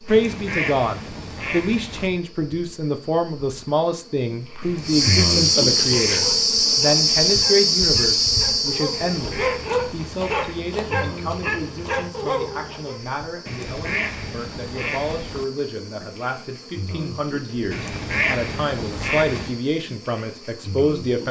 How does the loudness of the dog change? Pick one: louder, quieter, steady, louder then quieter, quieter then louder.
louder.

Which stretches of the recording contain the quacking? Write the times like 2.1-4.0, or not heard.
0.1-2.1, 4.6-6.5, 8.9-10.6, 13.4-15.4, 17.7-19.6.